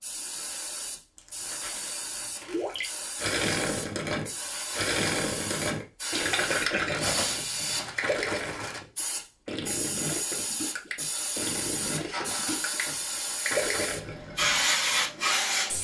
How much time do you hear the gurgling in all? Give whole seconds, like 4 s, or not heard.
12 s.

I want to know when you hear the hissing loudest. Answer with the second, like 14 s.
15 s.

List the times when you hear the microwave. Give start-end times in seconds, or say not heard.
not heard.